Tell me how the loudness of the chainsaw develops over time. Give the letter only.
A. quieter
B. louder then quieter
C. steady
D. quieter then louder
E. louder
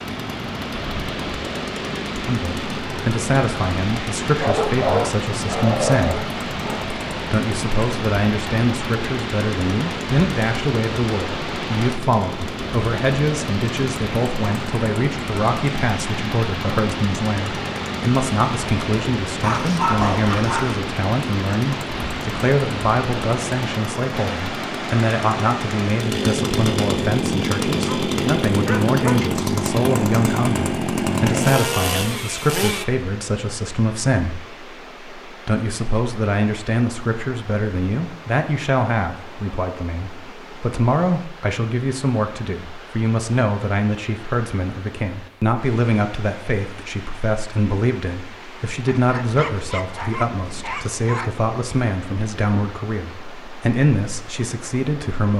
E.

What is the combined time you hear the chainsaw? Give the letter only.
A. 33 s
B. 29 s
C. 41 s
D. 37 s
A.